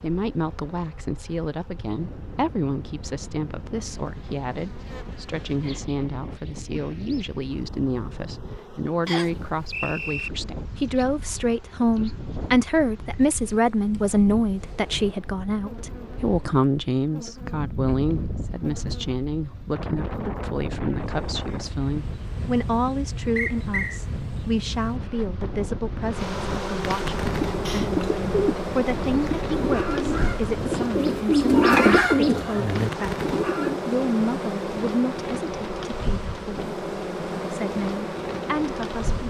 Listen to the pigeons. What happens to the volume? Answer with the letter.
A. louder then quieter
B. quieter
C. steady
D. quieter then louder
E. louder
A.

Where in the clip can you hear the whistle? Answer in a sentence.
The whistle can be heard from 9.1 to 10.3 s and from 23.4 to 24.0 s.